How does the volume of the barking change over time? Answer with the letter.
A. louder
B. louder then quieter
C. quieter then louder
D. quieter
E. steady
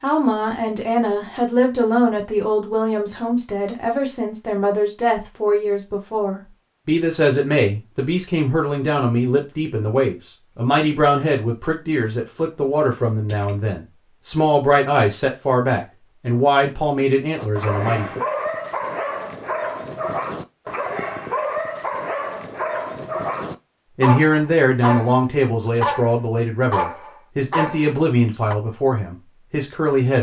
E.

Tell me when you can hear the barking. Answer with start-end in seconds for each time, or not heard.
17.4-28.6.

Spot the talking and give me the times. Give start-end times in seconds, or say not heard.
0.0-18.2, 23.9-30.1.